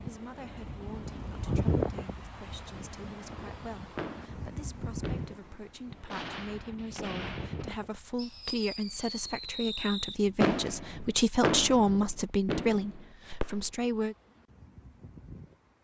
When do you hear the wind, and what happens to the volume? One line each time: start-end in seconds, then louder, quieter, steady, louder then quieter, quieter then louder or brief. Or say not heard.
0.0-15.7 quieter.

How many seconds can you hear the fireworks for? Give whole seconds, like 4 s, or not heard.
10 s.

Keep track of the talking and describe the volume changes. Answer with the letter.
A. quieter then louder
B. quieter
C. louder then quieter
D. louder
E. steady
D.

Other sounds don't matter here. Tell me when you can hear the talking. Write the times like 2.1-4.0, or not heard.
0.0-14.2.